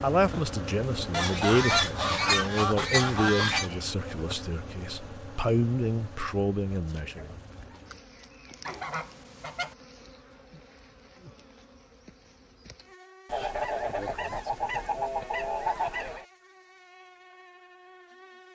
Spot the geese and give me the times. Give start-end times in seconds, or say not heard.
1.1-3.7, 8.7-9.8, 13.2-16.2.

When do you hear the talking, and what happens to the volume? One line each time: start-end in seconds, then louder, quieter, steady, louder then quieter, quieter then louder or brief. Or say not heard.
0.0-7.3 steady.